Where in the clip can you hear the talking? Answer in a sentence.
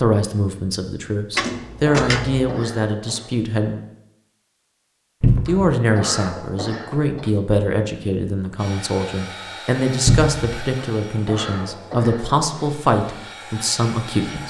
The talking can be heard from 0.0 to 3.8 s and from 5.5 to 14.4 s.